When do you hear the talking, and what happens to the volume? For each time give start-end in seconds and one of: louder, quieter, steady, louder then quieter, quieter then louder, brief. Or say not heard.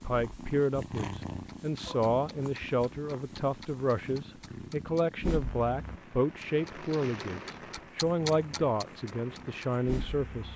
0.0-10.5 steady.